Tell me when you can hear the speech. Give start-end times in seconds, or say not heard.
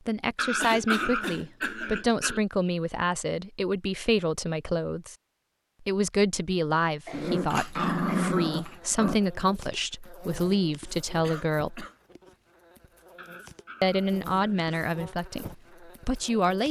0.1-5.2, 5.8-11.8, 13.8-16.6.